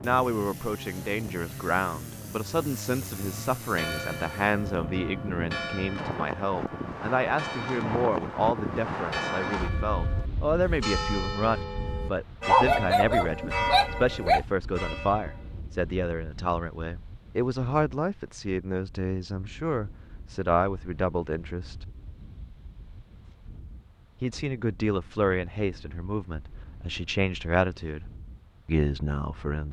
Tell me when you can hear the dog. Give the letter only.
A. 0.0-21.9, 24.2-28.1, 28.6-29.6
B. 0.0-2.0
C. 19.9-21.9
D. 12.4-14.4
D.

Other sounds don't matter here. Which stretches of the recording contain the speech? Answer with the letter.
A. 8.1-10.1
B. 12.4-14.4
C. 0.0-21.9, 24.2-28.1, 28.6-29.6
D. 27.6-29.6
C.